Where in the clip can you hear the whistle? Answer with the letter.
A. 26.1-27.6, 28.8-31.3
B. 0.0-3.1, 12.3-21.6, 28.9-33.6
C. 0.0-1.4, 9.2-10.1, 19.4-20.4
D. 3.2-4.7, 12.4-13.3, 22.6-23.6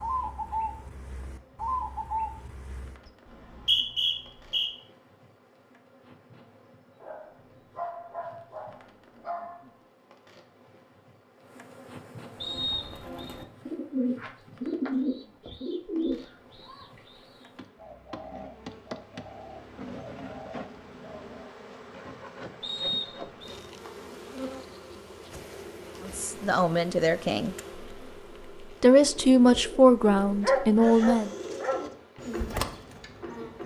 D.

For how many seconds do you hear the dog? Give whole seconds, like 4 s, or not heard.
4 s.